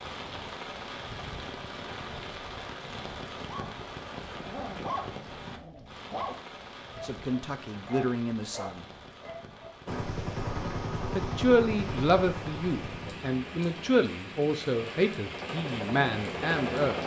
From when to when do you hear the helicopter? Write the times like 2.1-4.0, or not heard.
9.8-17.0.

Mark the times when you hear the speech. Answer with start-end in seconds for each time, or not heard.
7.0-8.8, 11.2-17.0.